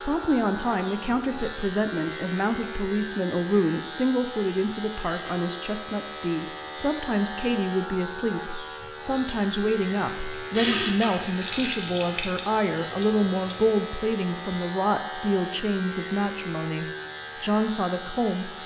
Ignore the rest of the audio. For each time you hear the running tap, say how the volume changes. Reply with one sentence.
The running tap can be heard from 9.3 to 13.8 s, getting louder then quieter.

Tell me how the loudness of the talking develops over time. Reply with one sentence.
The loudness of the talking stays about the same.